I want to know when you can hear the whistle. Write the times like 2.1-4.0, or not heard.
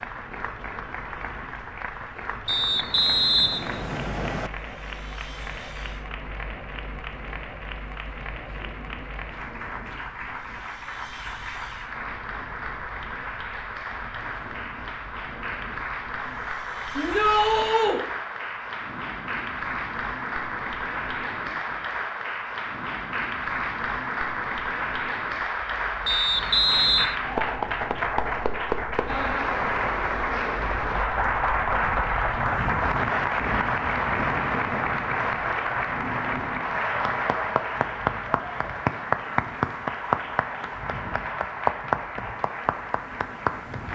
2.5-4.5, 26.1-27.1.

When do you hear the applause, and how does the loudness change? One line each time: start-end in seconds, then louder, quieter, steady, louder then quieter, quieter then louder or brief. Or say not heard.
0.0-43.8 louder.